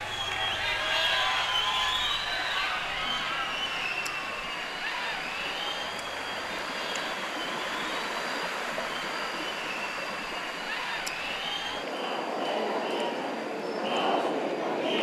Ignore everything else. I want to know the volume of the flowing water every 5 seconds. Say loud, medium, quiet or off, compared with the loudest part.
medium, loud, medium.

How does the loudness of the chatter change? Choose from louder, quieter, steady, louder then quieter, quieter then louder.
quieter then louder.